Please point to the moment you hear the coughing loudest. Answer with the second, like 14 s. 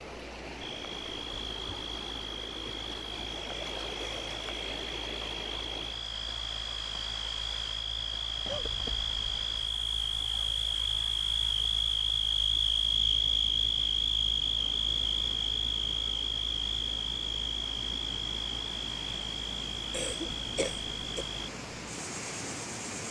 21 s.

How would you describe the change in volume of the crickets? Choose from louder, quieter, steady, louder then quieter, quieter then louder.
louder then quieter.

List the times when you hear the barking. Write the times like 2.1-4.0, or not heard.
not heard.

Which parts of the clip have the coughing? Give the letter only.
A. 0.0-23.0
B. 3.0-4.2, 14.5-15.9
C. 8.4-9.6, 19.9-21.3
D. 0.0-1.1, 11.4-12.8
C.